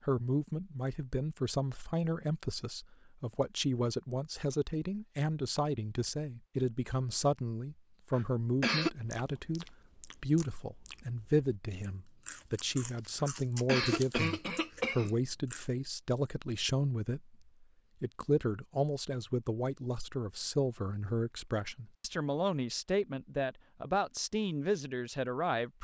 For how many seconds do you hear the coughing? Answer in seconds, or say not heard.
3 s.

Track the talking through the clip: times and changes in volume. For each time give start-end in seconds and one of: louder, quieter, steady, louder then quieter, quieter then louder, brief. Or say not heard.
0.0-25.7 steady.